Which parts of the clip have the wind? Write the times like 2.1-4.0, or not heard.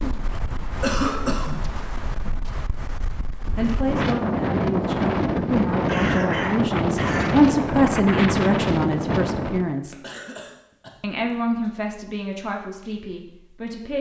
0.0-9.8.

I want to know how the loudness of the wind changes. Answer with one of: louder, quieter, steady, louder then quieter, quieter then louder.
louder.